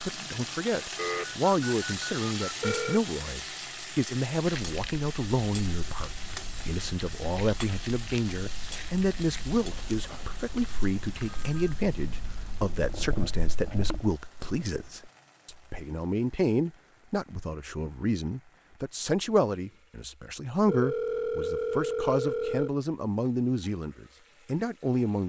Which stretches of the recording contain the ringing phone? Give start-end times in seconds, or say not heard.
0.9-3.0, 9.8-11.7, 20.6-22.7.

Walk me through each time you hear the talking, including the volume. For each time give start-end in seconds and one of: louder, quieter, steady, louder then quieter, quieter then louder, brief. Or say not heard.
0.0-25.2 steady.